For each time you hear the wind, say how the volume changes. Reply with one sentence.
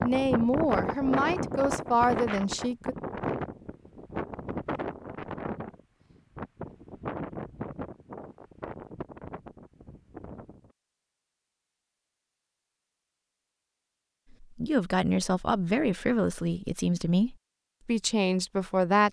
You can hear the wind from 0.0 to 10.7 s, getting quieter.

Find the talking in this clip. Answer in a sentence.
The talking can be heard from 0.0 to 3.0 s and from 14.4 to 19.0 s.